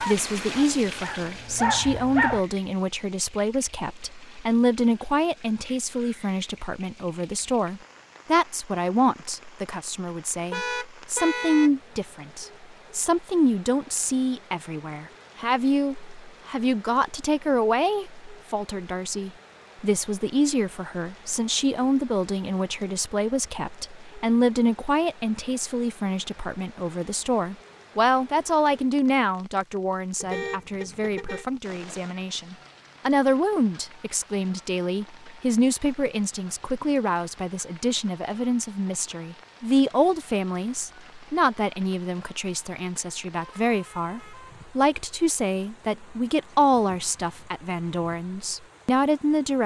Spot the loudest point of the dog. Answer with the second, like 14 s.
2 s.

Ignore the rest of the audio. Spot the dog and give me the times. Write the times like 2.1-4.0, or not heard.
0.0-2.4.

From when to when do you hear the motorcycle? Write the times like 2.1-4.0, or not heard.
not heard.